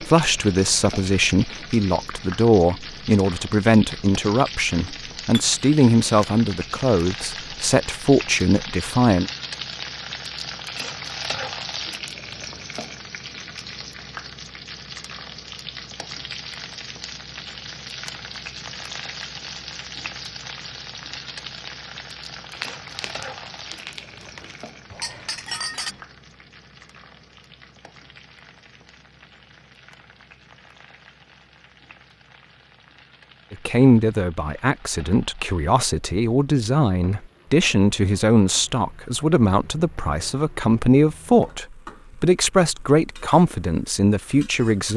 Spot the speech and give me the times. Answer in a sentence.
You can hear the speech from 0.0 to 9.3 s and from 33.5 to 44.9 s.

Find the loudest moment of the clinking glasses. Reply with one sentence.
The volume of the clinking glasses peaks at 26 seconds.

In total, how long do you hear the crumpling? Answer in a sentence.
The crumpling can be heard for 2 seconds in total.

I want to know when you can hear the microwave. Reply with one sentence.
The microwave can't be heard in this clip.